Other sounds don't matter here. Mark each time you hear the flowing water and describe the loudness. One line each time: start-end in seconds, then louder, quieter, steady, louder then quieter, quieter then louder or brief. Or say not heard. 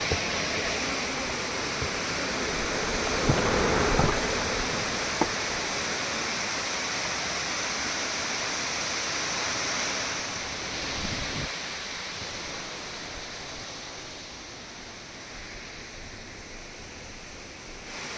0.0-18.1 quieter.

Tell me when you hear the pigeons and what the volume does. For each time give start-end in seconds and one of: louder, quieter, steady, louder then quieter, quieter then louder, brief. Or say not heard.
not heard.